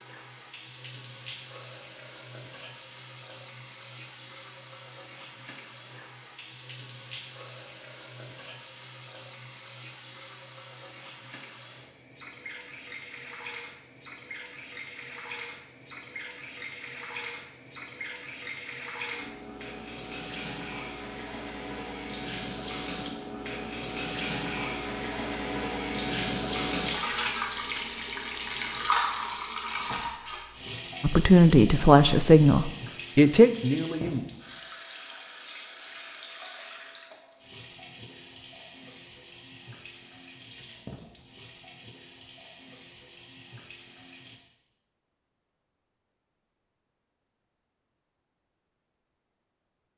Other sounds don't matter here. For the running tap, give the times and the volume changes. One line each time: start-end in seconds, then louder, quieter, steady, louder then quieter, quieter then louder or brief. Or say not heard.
0.0-44.4 louder then quieter.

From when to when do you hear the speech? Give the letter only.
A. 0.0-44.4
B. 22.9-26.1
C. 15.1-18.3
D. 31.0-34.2
D.